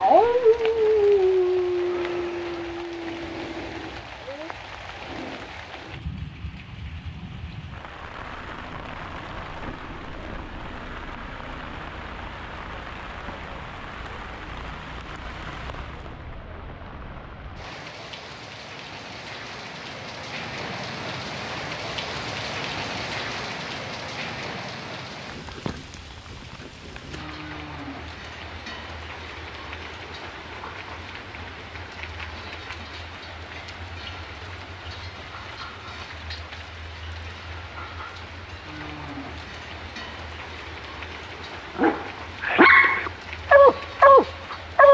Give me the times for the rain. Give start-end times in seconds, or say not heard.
0.0-44.8.